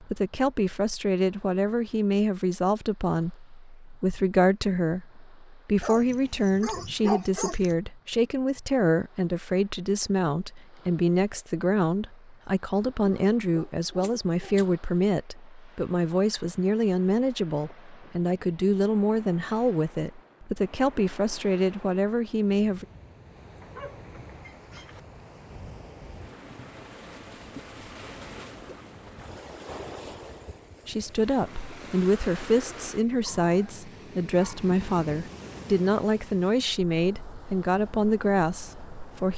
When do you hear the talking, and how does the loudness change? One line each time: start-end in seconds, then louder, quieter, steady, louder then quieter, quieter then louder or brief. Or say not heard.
0.0-22.9 steady
30.9-39.3 steady.